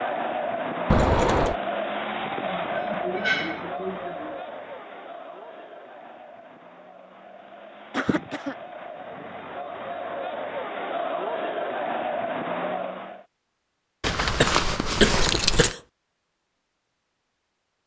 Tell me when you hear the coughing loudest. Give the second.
15 s.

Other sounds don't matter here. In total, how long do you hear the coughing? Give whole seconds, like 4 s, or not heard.
4 s.